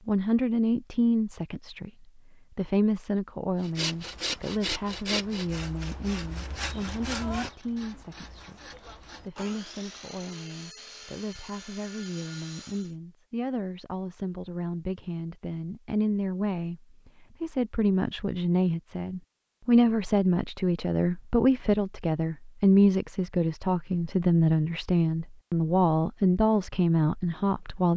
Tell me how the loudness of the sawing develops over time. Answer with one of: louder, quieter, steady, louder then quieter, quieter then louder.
quieter.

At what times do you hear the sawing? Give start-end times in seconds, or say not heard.
3.6-12.9.